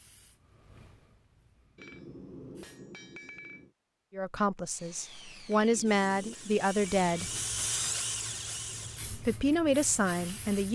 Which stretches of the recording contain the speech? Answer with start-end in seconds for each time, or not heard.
4.1-7.3, 9.1-10.7.